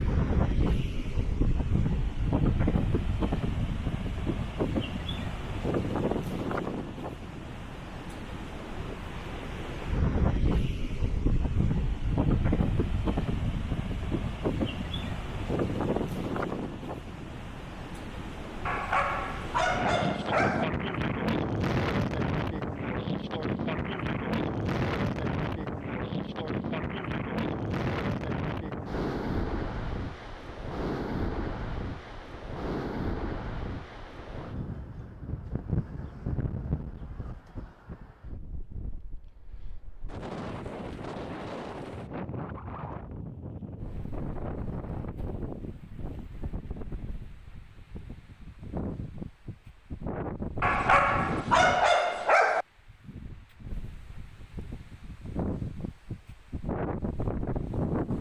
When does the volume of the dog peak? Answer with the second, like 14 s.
52 s.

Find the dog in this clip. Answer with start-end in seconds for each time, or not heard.
18.6-20.6, 50.6-52.6.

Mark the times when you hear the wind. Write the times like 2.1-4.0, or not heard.
0.0-58.1.